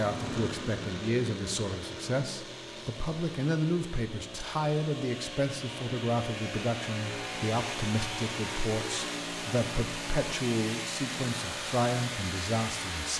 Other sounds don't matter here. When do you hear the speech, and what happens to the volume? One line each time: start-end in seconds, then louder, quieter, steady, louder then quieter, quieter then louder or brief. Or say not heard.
0.0-13.1 steady.